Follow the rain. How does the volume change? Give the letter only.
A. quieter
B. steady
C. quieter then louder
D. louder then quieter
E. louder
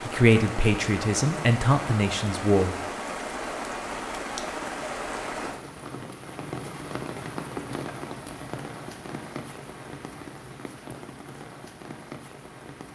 A.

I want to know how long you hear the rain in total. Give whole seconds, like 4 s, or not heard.
13 s.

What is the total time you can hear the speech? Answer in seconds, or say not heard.
3 s.